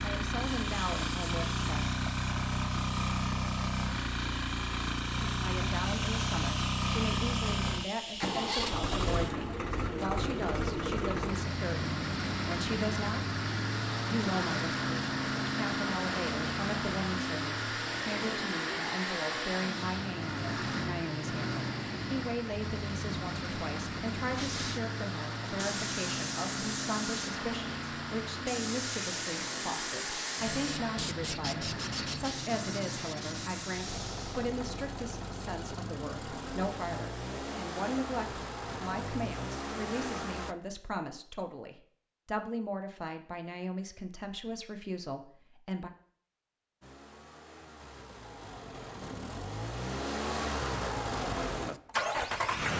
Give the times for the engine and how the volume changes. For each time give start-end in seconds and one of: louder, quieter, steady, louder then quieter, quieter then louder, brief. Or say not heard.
0.0-40.5 quieter
46.8-52.7 louder.